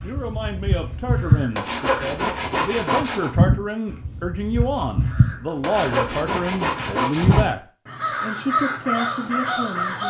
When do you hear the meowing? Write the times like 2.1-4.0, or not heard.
not heard.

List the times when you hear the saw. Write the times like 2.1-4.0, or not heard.
1.6-3.3, 5.6-7.5.